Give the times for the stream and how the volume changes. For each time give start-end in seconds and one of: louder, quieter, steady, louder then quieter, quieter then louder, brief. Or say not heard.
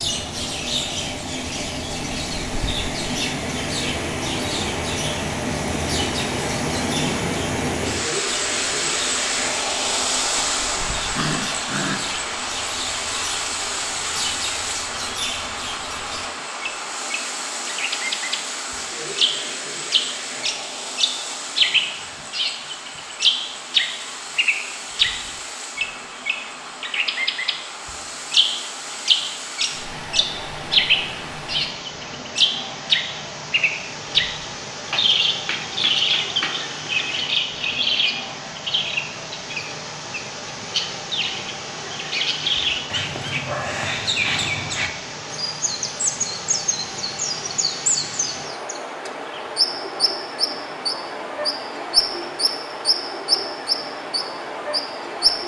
0.0-55.4 quieter.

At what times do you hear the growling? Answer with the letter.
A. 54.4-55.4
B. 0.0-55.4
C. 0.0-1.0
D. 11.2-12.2
D.